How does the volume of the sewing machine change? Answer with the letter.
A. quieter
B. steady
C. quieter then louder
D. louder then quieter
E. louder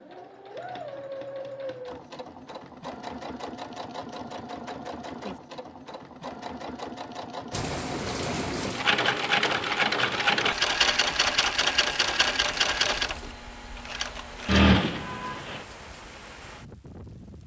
E.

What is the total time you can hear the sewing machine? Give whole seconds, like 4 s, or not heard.
16 s.